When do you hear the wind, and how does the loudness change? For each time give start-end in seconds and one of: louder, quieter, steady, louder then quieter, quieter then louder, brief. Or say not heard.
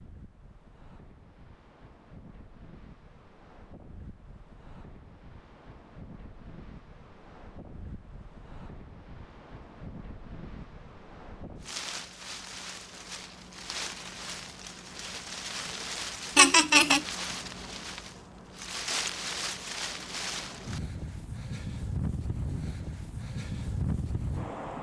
0.0-24.7 louder.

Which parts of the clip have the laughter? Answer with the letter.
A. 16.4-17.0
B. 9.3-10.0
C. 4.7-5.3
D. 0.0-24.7
A.